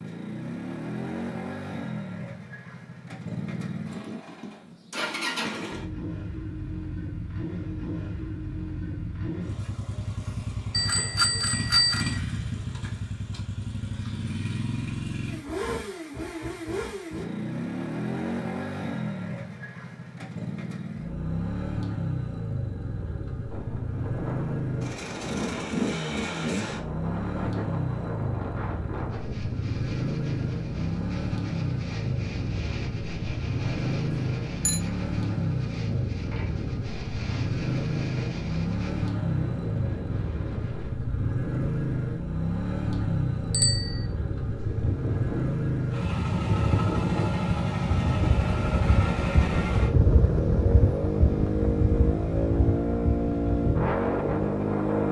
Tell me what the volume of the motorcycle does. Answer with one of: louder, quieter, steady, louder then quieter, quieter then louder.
louder.